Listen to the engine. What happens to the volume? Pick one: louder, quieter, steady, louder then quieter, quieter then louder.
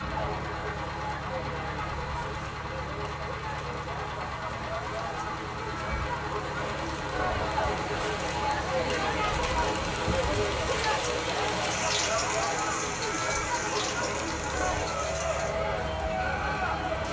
steady.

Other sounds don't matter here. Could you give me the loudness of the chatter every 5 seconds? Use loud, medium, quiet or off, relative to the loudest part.
medium, loud, loud, loud.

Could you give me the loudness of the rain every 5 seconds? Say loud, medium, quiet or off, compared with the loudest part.
quiet, medium, loud, medium.